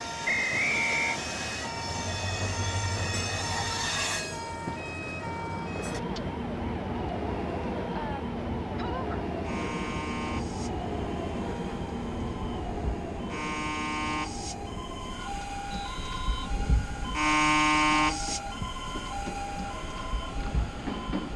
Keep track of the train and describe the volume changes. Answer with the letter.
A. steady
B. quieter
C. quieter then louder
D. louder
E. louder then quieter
B.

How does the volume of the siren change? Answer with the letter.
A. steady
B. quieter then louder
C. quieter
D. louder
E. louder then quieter
D.